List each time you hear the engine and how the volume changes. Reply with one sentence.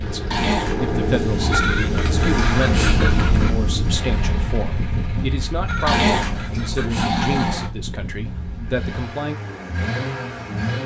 The engine can be heard from 0.0 to 10.8 s, getting quieter then louder.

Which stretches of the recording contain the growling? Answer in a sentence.
You can hear the growling from 0.3 to 1.7 s and from 5.8 to 7.7 s.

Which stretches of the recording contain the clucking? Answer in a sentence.
You can hear the clucking from 1.5 to 3.5 s and from 5.7 to 7.7 s.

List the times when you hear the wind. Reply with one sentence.
You can hear the wind from 0.0 to 8.8 s.